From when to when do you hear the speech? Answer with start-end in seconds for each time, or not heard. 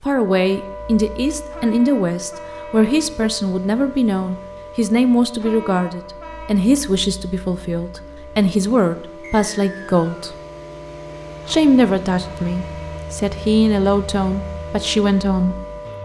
0.0-10.3, 11.4-15.6.